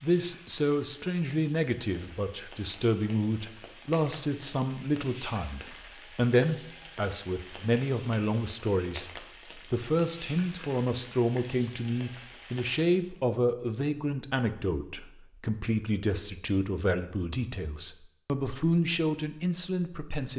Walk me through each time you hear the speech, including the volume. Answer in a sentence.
You can hear the speech from 0.0 to 20.3 s, at a steady volume.